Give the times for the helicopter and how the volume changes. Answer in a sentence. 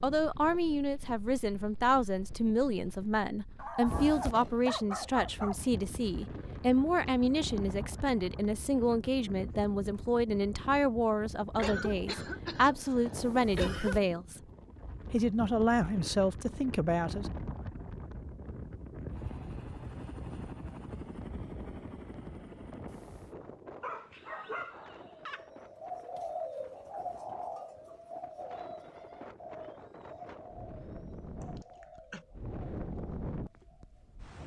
You can hear the helicopter from 19.1 to 23.1 s, at a steady volume.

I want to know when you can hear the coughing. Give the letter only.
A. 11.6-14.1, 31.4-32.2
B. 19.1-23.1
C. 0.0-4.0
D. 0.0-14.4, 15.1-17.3
A.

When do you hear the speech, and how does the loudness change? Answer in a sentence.
The speech can be heard from 0.0 to 14.4 s, at a steady volume; and briefly from 15.1 to 17.3 s.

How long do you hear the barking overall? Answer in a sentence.
The barking can be heard for 4 seconds in total.